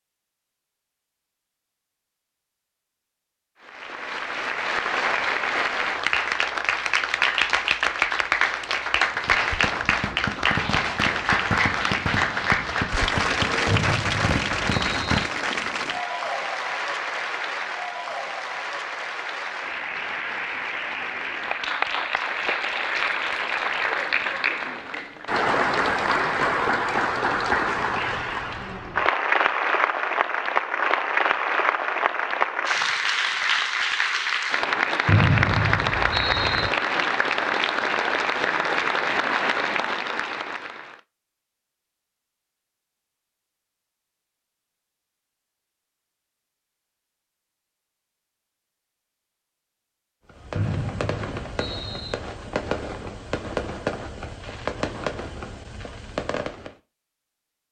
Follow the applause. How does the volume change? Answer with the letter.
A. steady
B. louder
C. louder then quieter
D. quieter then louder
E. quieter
A.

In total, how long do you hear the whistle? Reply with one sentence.
The whistle can be heard for 5 seconds in total.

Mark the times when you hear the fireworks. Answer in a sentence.
The fireworks can be heard from 9.2 to 15.2 s and from 50.3 to 56.8 s.